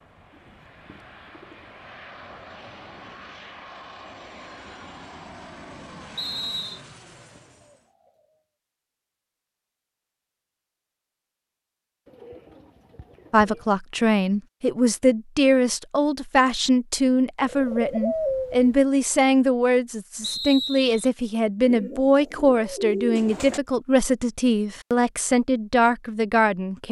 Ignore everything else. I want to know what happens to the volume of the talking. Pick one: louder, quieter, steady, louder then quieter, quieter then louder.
steady.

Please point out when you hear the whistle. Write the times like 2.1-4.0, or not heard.
6.2-6.8, 20.2-21.1.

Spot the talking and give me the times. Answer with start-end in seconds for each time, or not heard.
13.3-26.8.